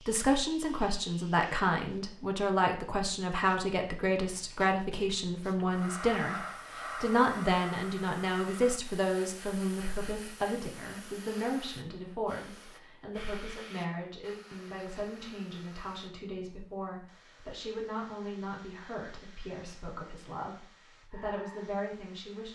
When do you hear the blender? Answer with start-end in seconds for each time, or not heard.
not heard.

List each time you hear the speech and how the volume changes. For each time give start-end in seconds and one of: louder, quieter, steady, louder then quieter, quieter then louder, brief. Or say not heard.
0.1-22.5 quieter.